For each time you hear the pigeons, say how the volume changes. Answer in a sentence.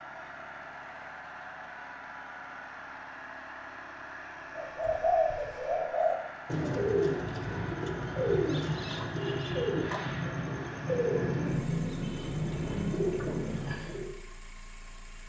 You can hear the pigeons from 4.5 to 14.1 s, at a steady volume.